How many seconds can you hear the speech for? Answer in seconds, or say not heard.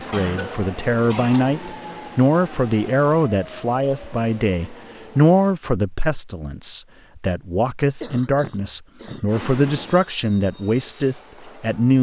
12 s.